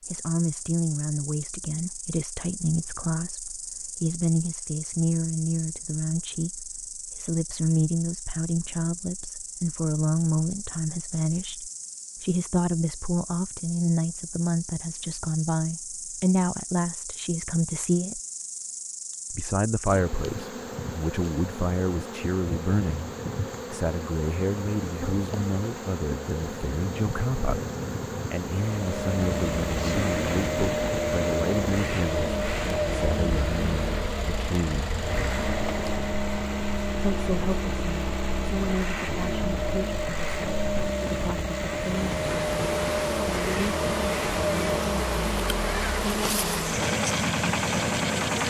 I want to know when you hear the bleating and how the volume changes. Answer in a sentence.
The bleating can't be heard in this clip.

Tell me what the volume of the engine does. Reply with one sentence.
The volume of the engine stays about the same.